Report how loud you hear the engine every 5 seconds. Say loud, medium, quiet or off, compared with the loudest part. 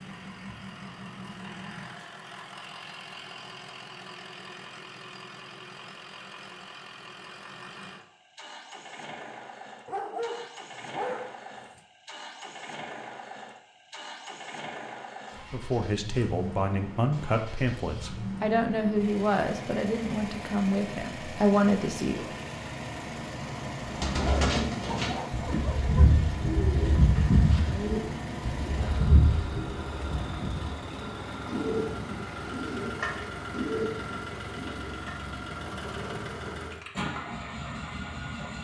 medium, medium, medium, loud, loud, loud, loud, loud.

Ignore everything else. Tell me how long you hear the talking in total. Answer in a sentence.
You can hear the talking for 7 seconds altogether.